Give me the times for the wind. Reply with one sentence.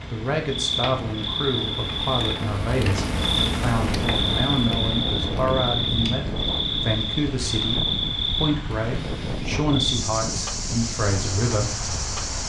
You can hear the wind from 3.8 to 12.4 s.